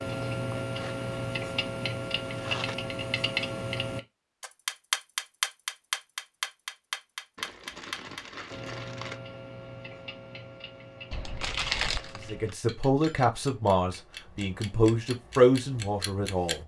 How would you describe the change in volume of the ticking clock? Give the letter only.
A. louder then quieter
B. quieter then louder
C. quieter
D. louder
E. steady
C.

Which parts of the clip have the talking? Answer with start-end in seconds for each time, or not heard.
12.2-16.6.